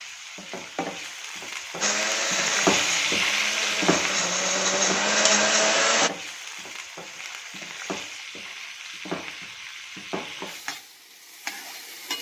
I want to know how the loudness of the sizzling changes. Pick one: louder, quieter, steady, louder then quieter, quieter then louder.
louder then quieter.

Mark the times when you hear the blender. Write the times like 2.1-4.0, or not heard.
1.8-6.1.